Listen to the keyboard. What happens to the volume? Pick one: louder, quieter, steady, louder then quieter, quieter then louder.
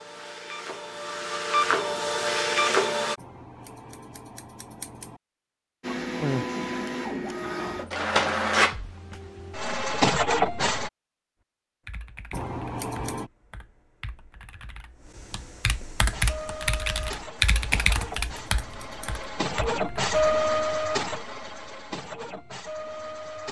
louder.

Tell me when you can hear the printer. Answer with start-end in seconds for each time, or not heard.
0.0-3.1, 5.8-10.9, 16.0-23.4.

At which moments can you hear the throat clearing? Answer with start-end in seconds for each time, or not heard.
6.2-7.8.